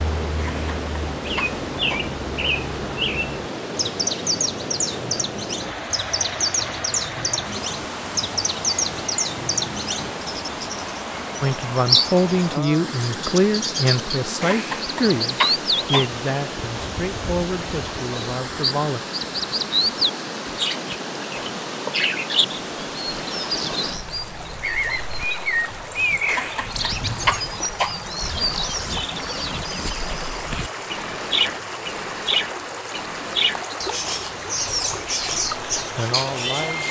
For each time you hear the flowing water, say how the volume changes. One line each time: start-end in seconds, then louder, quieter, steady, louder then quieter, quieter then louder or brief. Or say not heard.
0.0-36.8 steady.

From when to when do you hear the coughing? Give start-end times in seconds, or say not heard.
0.3-2.0, 14.4-16.1, 26.2-27.9.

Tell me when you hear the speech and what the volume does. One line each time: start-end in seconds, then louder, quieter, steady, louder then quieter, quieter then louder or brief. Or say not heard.
11.4-19.0 quieter
35.8-36.8 brief.